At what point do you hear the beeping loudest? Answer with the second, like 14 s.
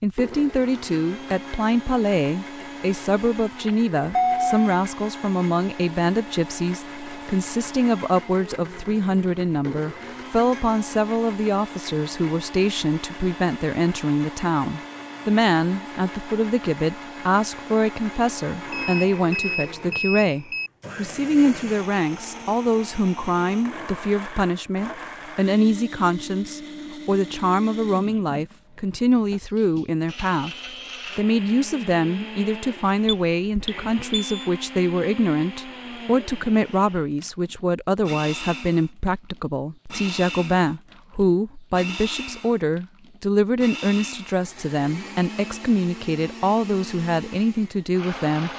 4 s.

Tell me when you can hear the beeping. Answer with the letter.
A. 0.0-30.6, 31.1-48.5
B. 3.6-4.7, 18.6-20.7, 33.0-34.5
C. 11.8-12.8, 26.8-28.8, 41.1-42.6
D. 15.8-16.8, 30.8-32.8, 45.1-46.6
B.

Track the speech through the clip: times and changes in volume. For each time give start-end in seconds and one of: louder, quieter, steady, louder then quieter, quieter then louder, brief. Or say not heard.
0.0-30.6 steady
31.1-48.5 steady.